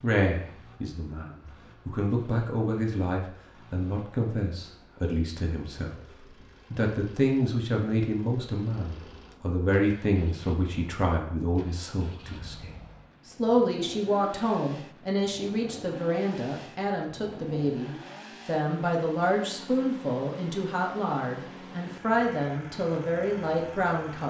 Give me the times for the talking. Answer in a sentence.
The talking can be heard from 0.0 to 24.2 s.